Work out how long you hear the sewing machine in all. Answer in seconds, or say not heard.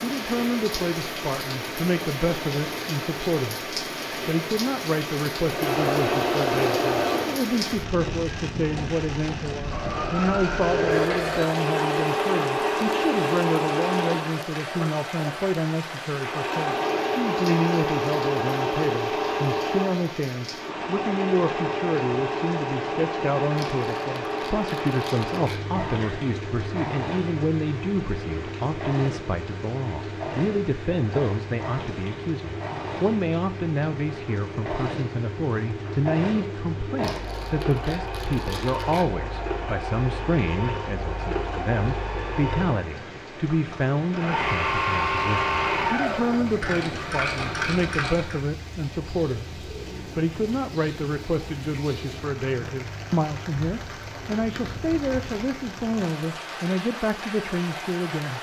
43 s.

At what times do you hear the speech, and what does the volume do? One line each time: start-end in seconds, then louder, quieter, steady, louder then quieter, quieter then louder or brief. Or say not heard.
0.0-58.3 steady.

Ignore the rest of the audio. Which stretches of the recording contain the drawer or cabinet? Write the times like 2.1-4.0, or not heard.
not heard.